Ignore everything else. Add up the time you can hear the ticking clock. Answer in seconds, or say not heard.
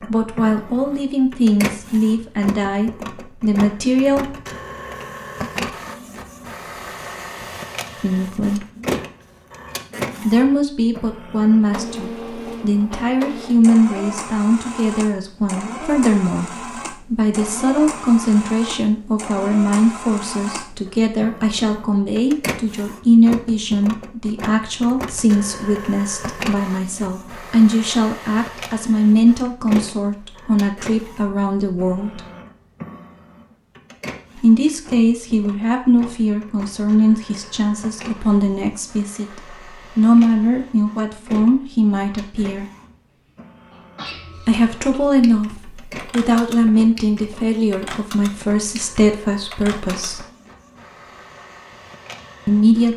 not heard.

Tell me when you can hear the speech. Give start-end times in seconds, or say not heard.
0.1-4.3, 8.0-8.7, 10.2-32.2, 34.4-42.6, 44.5-50.2, 52.5-52.9.